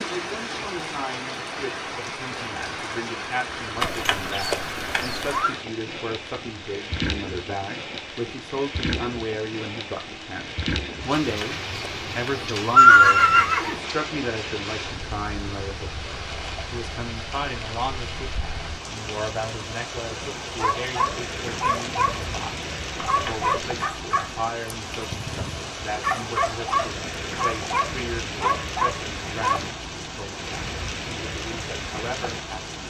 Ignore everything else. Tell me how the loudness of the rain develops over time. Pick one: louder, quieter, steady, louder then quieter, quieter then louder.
steady.